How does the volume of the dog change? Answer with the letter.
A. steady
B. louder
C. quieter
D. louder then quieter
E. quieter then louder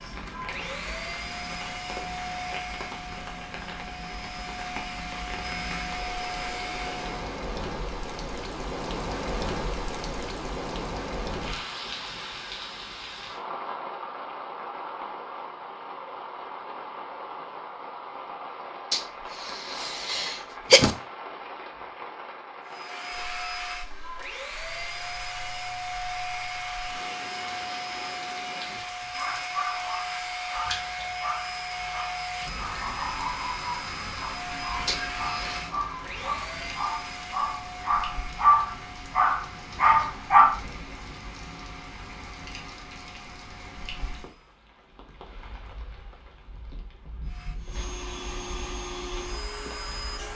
B.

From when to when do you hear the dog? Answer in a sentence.
You can hear the dog from 28.6 to 40.6 s.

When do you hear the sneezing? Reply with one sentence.
You can hear the sneezing from 18.9 to 20.9 s and from 34.9 to 35.6 s.